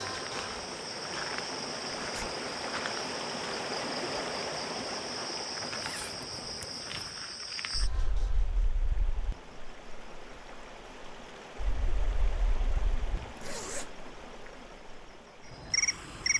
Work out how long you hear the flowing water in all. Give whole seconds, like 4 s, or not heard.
16 s.